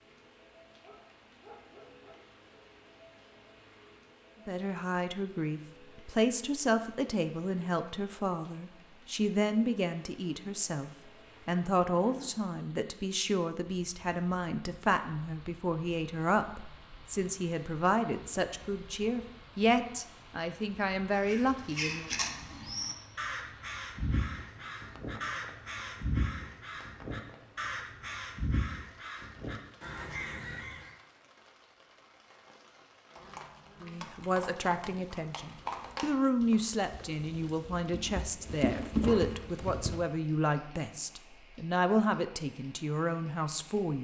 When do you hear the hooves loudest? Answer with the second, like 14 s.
39 s.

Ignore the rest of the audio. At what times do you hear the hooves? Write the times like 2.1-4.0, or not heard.
33.1-40.0.